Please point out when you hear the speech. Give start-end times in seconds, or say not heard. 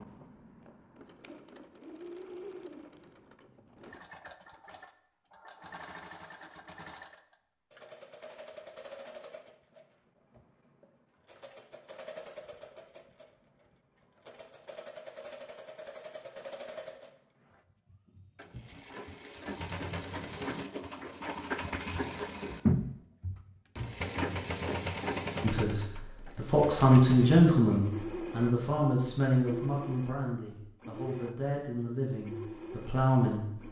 25.4-33.5.